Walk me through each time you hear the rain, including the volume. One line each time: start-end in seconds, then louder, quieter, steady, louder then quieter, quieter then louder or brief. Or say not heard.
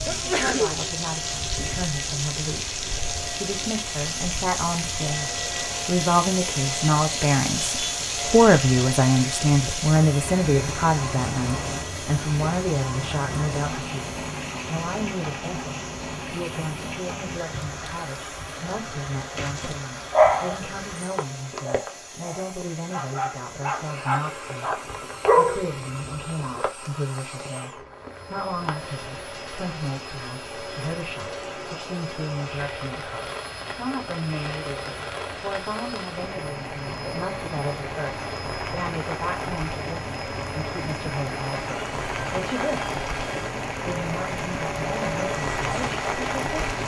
0.0-46.8 quieter then louder.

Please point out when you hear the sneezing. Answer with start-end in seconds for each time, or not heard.
0.1-0.8.